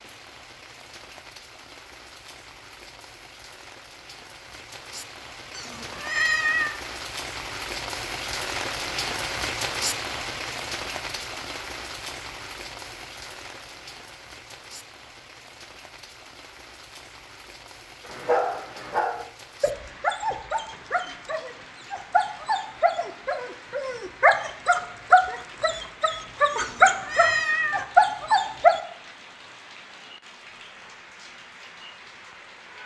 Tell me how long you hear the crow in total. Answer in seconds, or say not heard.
not heard.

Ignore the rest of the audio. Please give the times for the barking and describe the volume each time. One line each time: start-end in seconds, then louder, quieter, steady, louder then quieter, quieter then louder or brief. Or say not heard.
18.1-28.8 louder.